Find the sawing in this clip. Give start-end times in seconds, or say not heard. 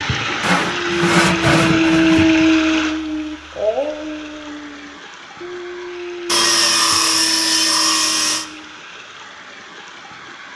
0.4-2.2, 6.2-8.4.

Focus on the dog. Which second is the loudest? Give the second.
2 s.